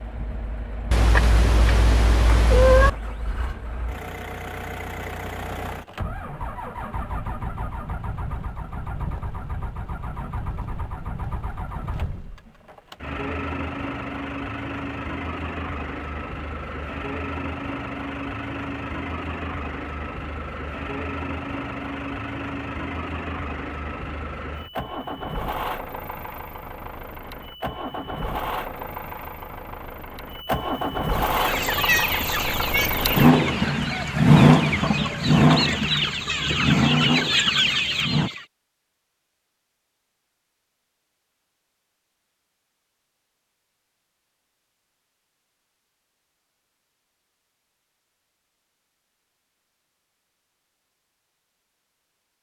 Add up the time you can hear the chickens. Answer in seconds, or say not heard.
7 s.